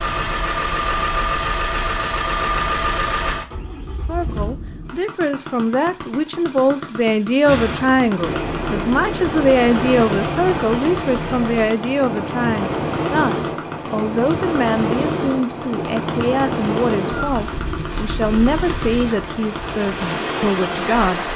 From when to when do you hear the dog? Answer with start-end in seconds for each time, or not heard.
not heard.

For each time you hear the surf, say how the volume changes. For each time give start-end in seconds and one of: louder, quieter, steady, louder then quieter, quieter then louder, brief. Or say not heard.
7.5-21.3 steady.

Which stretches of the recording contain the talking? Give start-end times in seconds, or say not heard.
4.0-21.3.